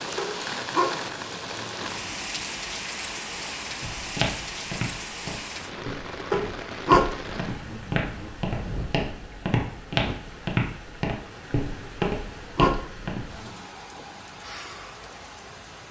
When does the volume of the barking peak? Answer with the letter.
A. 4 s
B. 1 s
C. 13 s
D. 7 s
D.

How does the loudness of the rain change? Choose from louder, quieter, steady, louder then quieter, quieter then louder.
quieter.